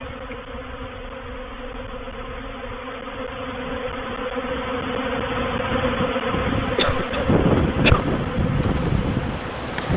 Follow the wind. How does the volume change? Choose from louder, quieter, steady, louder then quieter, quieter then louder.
louder.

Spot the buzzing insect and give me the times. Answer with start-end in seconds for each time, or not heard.
0.0-9.9.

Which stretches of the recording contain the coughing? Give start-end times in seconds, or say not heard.
6.8-8.1.